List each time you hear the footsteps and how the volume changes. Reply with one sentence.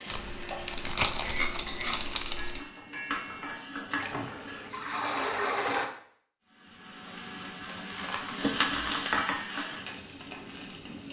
The footsteps can't be heard in this clip.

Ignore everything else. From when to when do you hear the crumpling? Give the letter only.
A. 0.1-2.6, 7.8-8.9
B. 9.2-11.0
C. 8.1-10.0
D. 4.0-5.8
A.